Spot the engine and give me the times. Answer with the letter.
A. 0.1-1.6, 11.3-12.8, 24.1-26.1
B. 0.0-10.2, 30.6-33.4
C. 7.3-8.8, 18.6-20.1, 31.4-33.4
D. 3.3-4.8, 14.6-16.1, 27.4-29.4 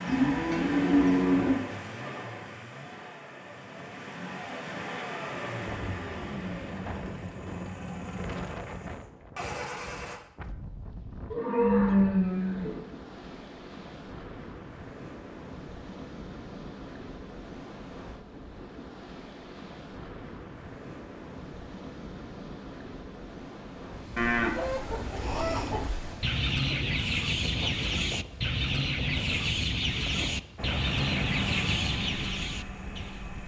B.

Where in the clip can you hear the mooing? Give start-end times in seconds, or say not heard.
0.1-1.6, 11.3-12.8, 24.1-26.1.